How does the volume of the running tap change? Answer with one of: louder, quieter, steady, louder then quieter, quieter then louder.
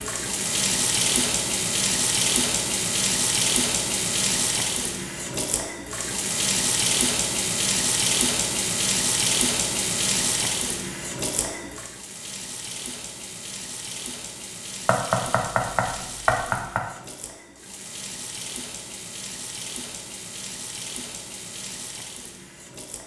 quieter.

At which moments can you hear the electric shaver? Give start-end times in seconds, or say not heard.
not heard.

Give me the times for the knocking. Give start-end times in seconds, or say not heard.
14.8-16.8.